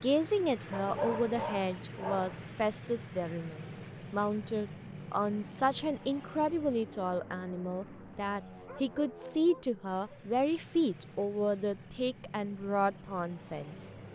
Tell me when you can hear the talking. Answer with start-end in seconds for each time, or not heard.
0.0-13.9.